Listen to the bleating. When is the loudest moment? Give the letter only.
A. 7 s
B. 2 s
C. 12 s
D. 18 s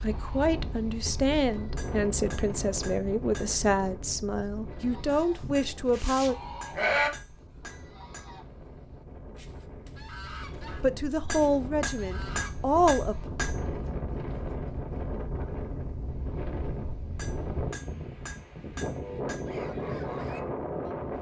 A.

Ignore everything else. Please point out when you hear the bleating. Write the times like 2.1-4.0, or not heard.
5.1-7.1.